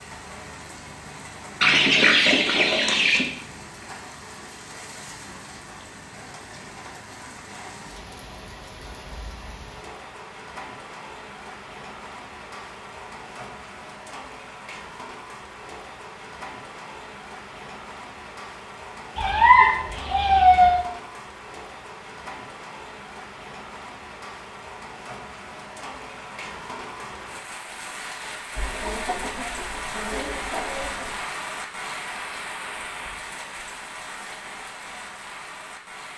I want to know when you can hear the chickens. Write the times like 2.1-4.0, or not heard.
1.6-3.3, 19.1-20.9, 28.6-31.2.